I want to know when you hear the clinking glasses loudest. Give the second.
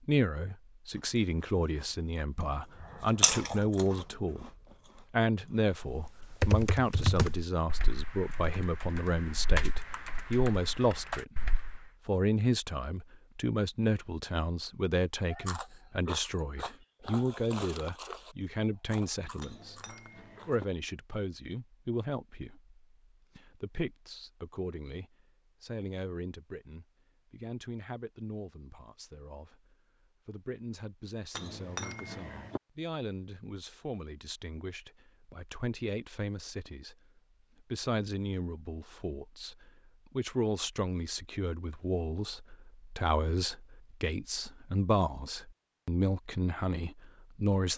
32 s.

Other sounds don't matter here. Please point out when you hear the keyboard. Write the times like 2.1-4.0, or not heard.
5.8-11.8.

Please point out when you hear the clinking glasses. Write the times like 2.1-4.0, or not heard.
19.4-20.6, 31.3-32.6.